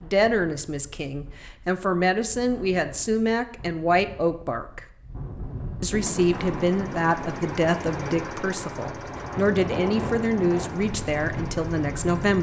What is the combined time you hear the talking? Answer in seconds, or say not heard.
11 s.